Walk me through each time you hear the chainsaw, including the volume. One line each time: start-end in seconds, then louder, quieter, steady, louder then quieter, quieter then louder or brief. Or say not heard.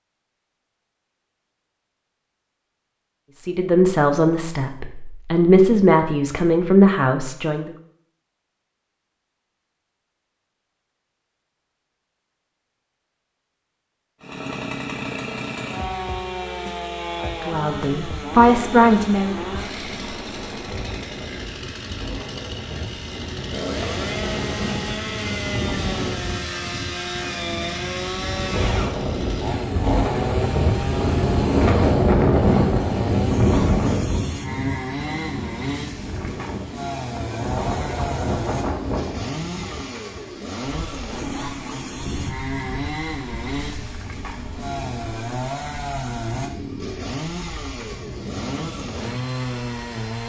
14.2-50.2 steady.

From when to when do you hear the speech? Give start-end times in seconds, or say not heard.
3.4-7.7, 17.2-19.4.